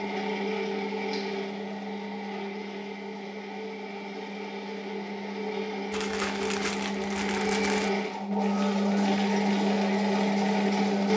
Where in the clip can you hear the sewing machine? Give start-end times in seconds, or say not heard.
0.0-11.1.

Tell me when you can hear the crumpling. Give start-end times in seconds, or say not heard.
5.9-7.9.